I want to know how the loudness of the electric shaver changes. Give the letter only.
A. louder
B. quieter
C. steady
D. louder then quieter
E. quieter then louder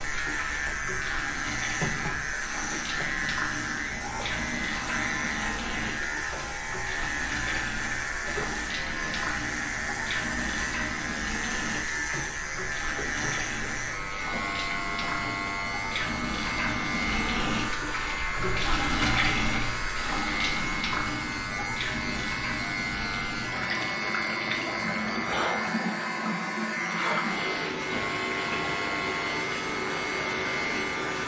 C.